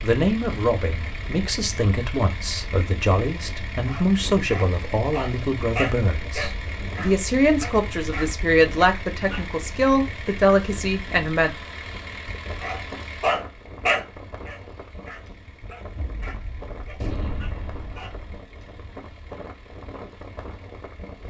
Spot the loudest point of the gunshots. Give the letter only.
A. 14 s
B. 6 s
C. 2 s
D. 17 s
D.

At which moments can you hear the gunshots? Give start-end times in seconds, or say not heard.
15.9-18.4.